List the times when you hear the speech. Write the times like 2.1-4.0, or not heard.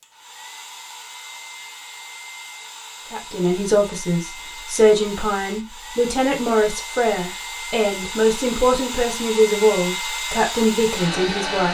3.1-11.7.